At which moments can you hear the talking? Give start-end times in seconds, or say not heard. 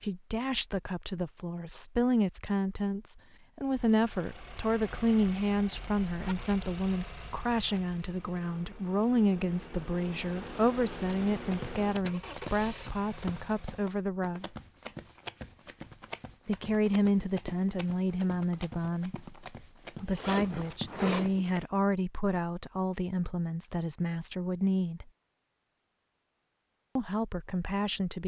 0.0-14.5, 16.4-19.2, 20.0-25.1, 26.9-28.2.